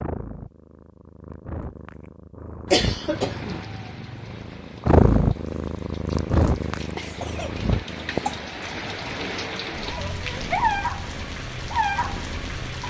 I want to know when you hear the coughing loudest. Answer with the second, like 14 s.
3 s.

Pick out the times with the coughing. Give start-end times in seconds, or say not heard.
2.6-3.6, 7.0-8.4.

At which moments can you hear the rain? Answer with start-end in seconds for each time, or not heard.
3.1-12.8.